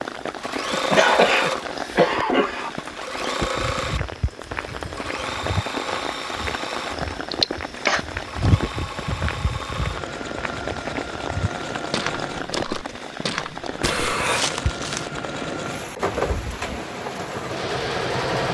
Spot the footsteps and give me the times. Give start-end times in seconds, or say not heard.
3.5-15.1.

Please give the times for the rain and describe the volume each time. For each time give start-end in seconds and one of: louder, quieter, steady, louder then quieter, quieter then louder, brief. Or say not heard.
0.0-18.4 steady.